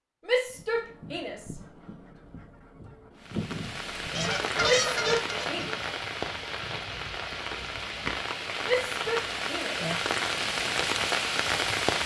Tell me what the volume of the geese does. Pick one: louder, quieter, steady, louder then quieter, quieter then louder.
louder then quieter.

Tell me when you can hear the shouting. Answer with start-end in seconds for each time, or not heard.
0.2-1.6, 4.6-5.7, 8.7-9.8.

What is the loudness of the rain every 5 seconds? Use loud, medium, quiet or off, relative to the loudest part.
medium, medium, loud.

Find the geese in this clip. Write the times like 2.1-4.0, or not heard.
0.5-8.1.